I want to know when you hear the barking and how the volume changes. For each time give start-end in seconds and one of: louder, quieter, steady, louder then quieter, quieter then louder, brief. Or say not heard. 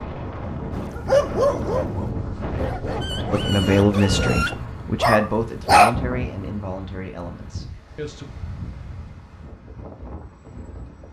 0.8-6.0 quieter then louder.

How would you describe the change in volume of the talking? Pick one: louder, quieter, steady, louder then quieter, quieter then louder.
quieter.